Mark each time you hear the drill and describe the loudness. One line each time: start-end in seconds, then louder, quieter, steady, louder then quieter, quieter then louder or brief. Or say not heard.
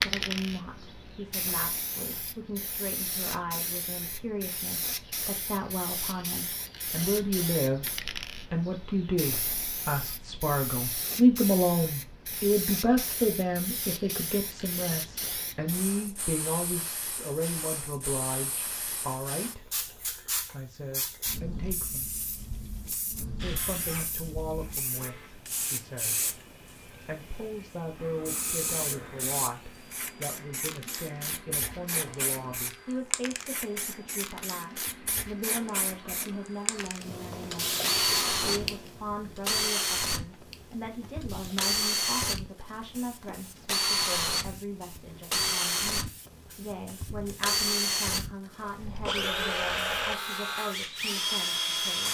23.4-25.3 brief
27.9-52.0 louder.